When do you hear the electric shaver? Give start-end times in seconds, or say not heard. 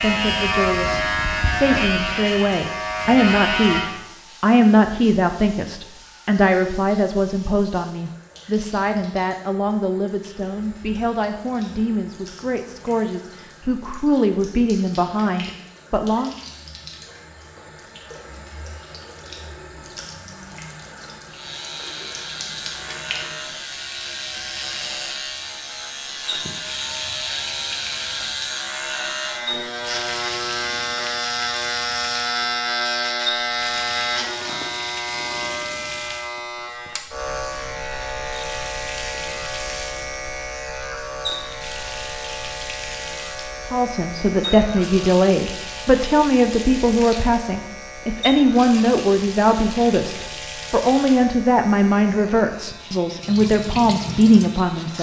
0.0-4.0, 21.3-54.9.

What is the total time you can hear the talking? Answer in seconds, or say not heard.
27 s.